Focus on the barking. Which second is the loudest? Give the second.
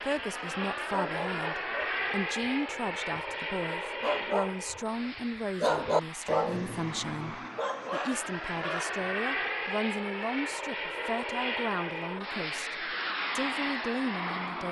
6 s.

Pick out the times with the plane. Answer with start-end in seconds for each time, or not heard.
0.0-14.6.